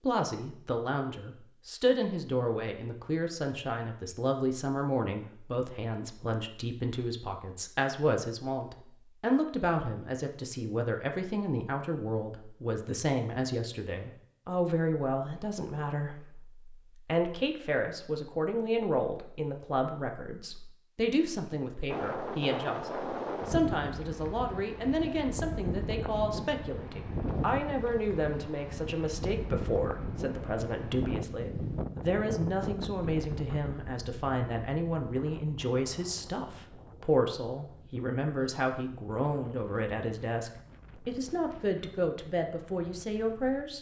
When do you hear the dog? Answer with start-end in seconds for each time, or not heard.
not heard.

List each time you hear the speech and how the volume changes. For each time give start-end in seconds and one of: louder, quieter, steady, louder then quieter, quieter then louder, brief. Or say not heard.
0.0-43.7 steady.